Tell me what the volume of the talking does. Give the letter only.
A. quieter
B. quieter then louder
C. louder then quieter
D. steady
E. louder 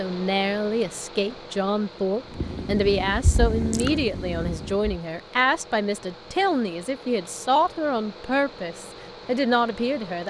D.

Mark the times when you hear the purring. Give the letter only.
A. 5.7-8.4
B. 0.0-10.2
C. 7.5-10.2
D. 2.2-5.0
D.